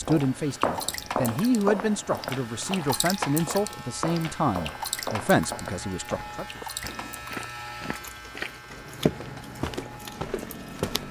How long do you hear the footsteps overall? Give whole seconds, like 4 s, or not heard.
11 s.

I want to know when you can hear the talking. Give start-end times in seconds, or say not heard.
0.0-6.6.